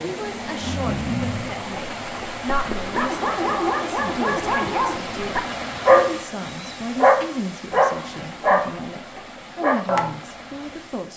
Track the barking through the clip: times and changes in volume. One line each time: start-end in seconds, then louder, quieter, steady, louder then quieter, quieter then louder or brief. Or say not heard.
0.2-10.2 louder.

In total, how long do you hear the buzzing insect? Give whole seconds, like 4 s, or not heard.
not heard.